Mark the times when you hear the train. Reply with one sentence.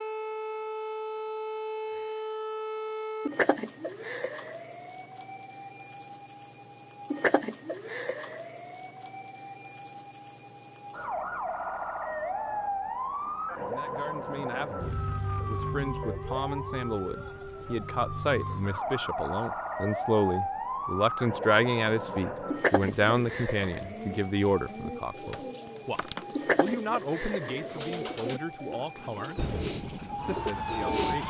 The train can be heard from 29.4 to 31.2 s.